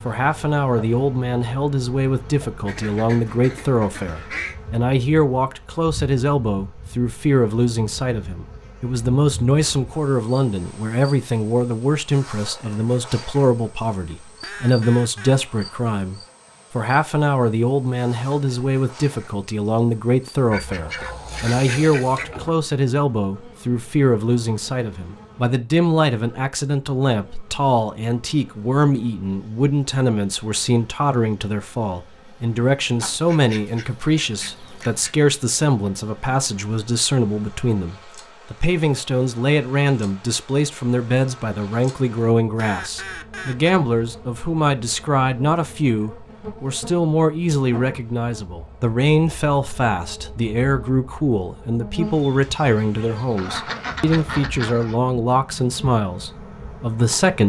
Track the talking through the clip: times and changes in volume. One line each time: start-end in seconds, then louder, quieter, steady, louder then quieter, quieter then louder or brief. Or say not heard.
0.1-57.4 steady.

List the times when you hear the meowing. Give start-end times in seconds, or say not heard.
not heard.